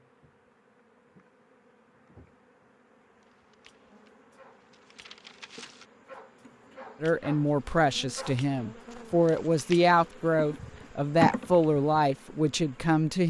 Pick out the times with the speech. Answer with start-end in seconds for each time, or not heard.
7.0-13.2.